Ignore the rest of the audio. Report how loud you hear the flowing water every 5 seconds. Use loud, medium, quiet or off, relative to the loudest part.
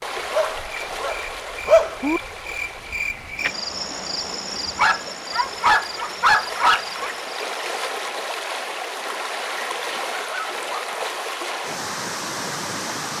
medium, loud, loud.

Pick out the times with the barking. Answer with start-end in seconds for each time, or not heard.
0.3-2.2, 4.8-7.1, 9.6-11.2.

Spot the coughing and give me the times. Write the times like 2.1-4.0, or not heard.
not heard.